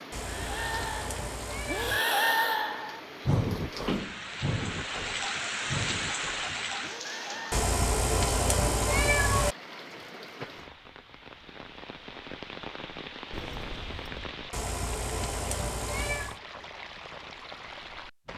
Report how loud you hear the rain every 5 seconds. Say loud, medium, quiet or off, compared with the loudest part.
medium, loud, medium, medium.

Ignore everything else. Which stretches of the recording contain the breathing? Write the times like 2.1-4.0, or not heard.
0.1-7.7.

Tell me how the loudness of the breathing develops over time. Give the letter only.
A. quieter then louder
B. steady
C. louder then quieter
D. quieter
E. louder
C.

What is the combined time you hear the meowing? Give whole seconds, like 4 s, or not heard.
6 s.